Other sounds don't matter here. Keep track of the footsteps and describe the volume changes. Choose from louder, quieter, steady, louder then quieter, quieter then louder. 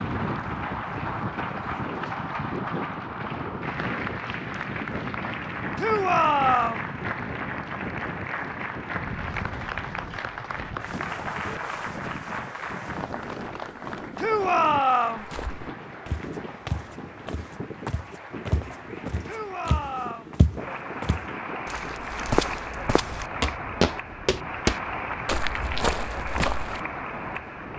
louder.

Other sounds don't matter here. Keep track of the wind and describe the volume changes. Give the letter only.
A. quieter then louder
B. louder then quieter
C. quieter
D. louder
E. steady
C.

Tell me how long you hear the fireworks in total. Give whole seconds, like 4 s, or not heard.
not heard.